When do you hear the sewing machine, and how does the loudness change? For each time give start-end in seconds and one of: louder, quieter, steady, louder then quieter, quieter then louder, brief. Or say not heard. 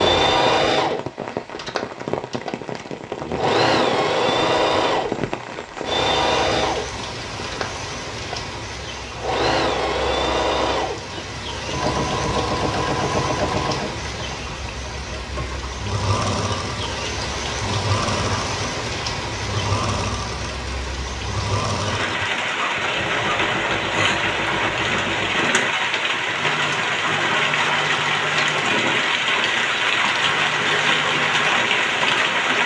0.0-28.8 quieter
30.1-31.6 brief.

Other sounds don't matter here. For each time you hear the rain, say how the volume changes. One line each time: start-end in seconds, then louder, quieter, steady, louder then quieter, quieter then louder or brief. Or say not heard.
0.0-32.6 louder.